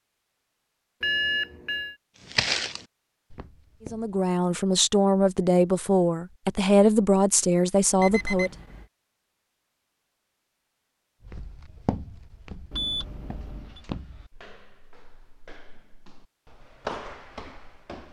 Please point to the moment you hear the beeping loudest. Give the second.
1 s.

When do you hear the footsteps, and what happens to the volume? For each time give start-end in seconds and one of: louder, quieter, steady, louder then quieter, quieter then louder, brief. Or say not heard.
2.3-4.2 brief
11.2-18.0 quieter then louder.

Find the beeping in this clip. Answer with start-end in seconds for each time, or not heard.
1.0-1.9, 8.0-8.8, 12.7-13.8.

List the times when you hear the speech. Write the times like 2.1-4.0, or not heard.
3.9-8.5.